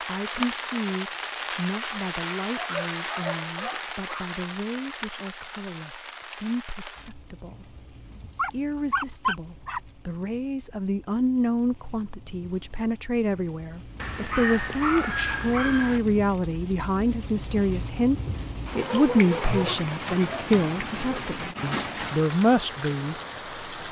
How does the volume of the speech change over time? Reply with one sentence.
The volume of the speech goes up.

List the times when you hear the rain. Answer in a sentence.
The rain can be heard from 0.0 to 23.8 s.